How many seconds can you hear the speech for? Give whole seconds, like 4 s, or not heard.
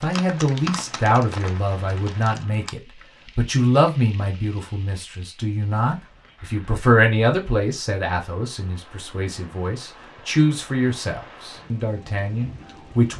13 s.